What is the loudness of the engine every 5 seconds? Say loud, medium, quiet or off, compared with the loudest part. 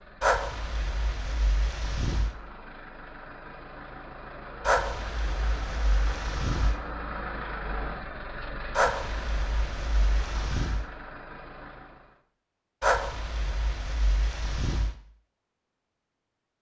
medium, loud, medium, off.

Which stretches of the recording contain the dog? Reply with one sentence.
You can hear the dog from 0.2 to 2.4 s, from 4.6 to 6.8 s, from 8.7 to 10.9 s and from 12.8 to 14.9 s.